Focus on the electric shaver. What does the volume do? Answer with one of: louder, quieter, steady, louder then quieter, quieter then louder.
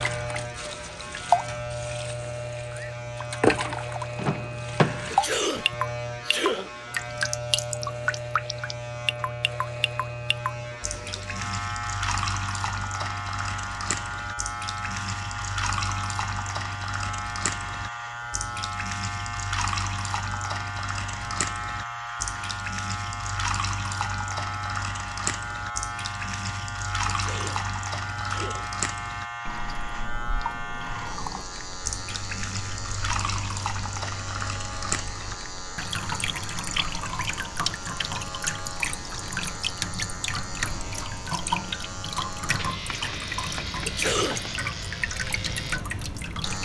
steady.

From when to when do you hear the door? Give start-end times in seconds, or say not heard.
4.2-5.2.